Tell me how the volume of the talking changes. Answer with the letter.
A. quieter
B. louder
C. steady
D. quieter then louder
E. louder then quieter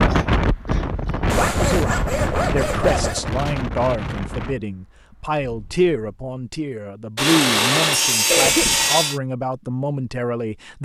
C.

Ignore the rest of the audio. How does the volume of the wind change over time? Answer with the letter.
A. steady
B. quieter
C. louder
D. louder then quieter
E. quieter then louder
B.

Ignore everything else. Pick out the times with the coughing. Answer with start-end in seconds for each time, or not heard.
0.1-1.3, 8.2-8.8.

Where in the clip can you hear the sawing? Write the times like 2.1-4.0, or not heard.
1.2-3.2, 7.2-9.2.